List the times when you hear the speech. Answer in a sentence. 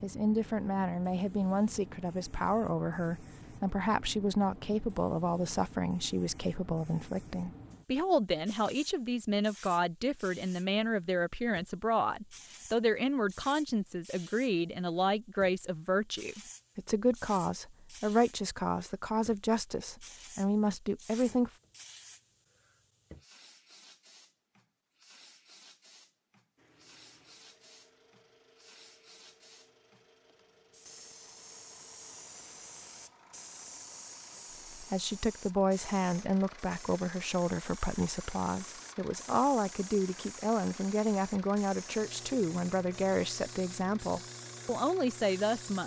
The speech can be heard from 0.0 to 21.5 s and from 34.8 to 45.8 s.